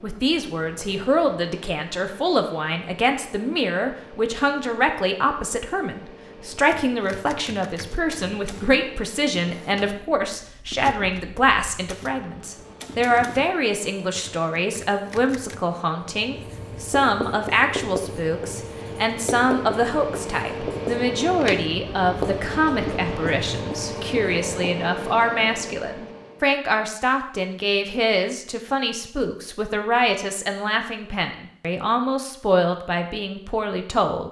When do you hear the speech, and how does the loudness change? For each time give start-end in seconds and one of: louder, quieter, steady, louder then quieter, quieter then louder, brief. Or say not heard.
0.0-34.2 steady.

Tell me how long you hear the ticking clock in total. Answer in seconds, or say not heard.
not heard.